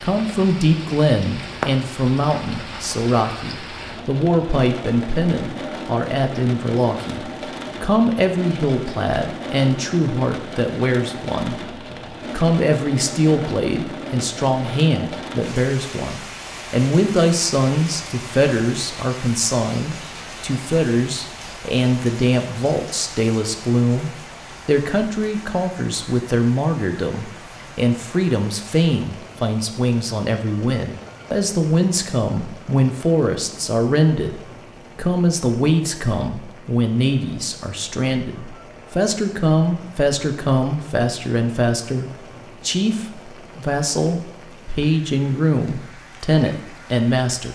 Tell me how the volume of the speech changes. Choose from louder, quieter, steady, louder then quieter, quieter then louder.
steady.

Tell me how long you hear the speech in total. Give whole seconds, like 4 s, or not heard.
47 s.